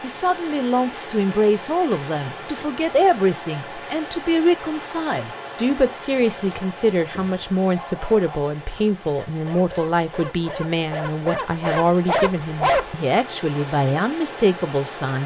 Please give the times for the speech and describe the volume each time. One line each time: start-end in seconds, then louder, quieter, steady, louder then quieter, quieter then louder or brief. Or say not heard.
0.0-15.2 steady.